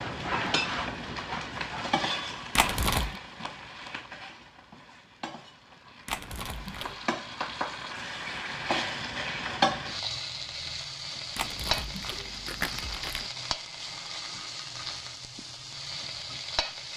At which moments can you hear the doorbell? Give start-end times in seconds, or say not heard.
not heard.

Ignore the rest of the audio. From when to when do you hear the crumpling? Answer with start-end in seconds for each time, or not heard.
2.5-3.2, 6.0-7.0, 11.3-13.3.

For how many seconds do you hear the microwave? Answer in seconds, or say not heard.
not heard.